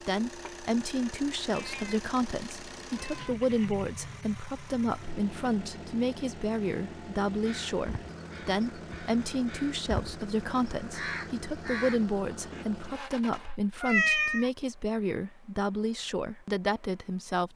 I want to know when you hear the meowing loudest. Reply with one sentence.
The volume of the meowing peaks at 14 seconds.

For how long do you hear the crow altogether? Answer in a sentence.
You can hear the crow for 5 seconds altogether.